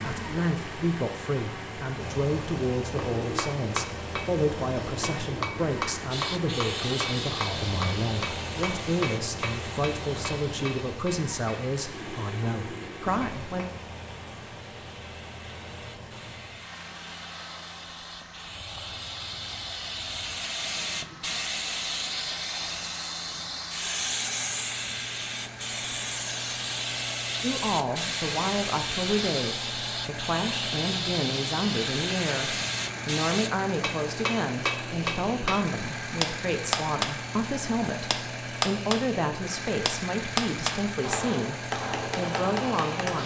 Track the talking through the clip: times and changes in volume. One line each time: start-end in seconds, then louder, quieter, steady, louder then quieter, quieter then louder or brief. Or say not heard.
0.0-13.7 steady
27.4-41.5 steady
42.1-43.2 brief.